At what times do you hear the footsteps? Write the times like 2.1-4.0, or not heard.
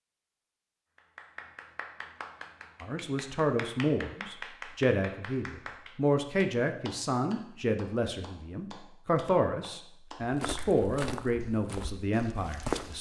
10.2-12.9.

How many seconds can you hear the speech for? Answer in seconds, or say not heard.
10 s.